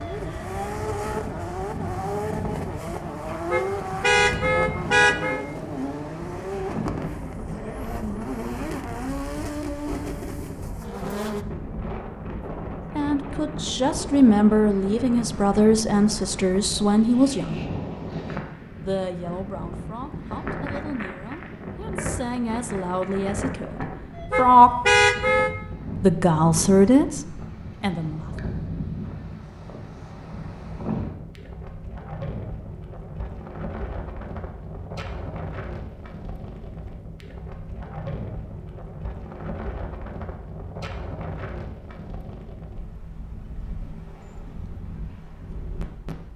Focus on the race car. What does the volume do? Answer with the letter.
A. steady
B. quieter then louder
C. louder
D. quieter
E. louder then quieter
A.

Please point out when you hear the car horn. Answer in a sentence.
The car horn can be heard from 3.5 to 5.5 s and from 24.3 to 25.5 s.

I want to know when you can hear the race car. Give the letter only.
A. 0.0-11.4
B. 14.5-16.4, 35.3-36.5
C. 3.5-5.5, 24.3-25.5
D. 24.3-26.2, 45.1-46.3
A.